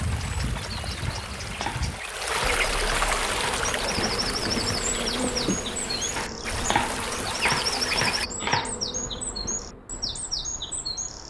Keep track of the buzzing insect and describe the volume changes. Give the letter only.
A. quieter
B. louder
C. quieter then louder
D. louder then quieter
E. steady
A.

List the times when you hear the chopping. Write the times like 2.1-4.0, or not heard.
1.1-3.4, 6.2-8.8.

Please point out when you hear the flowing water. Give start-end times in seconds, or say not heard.
0.0-8.2.